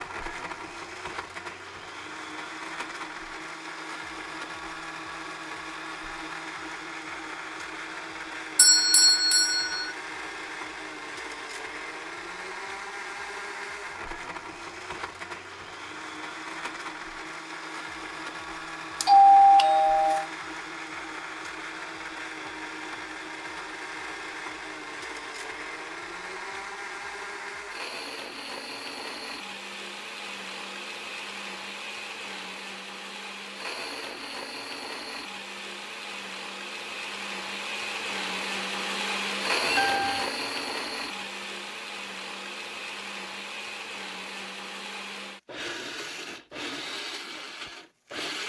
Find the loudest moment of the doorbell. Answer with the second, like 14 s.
19 s.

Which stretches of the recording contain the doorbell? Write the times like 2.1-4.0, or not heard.
8.6-9.9, 19.0-20.2, 39.6-40.3.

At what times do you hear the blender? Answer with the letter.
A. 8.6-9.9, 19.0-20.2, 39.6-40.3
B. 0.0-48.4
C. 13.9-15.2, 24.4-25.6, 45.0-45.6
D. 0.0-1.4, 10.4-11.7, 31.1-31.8
B.